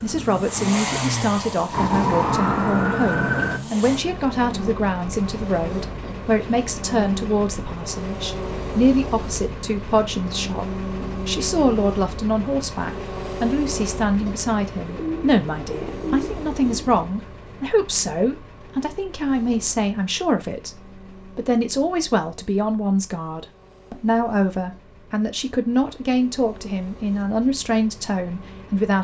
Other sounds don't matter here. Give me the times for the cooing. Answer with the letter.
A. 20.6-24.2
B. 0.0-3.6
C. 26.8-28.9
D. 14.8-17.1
D.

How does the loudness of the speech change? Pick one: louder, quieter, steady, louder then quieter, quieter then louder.
steady.